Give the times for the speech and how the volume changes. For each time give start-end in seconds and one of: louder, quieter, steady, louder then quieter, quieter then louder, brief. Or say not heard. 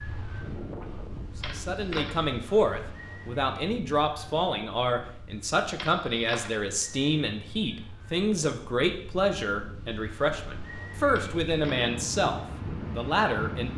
1.6-13.7 steady.